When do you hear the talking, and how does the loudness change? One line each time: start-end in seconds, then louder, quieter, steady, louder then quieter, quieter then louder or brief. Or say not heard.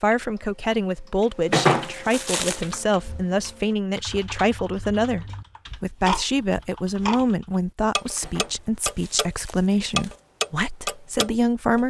0.0-11.8 steady.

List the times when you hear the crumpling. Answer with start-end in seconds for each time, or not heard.
1.5-2.6, 8.2-10.2.